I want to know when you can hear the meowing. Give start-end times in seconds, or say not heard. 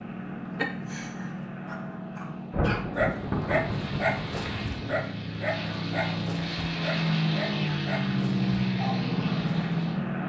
not heard.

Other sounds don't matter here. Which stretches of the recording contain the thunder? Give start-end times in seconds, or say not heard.
2.5-5.0.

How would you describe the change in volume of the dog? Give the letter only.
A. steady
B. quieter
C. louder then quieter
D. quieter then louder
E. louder
C.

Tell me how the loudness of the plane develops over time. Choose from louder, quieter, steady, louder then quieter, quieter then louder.
louder.